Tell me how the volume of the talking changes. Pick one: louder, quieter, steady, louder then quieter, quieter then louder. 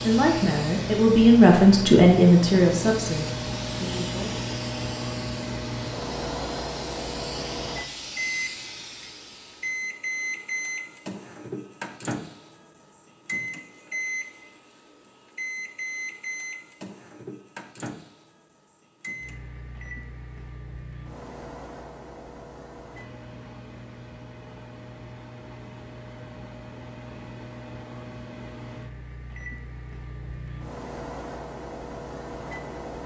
louder then quieter.